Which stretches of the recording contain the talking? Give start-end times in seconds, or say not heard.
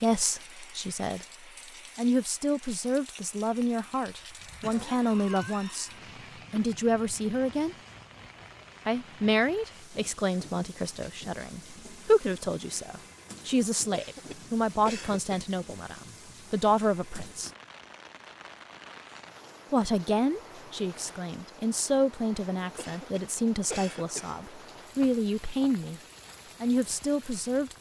0.0-1.2, 1.9-5.9, 6.5-7.8, 8.8-17.5, 19.7-26.0, 26.6-27.7.